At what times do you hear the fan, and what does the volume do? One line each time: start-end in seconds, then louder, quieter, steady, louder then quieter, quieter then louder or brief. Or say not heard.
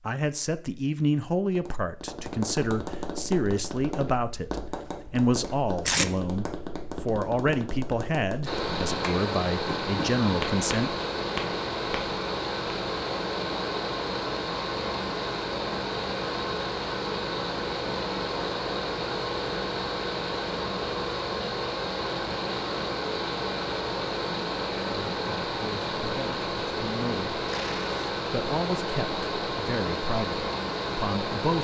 8.4-31.5 steady.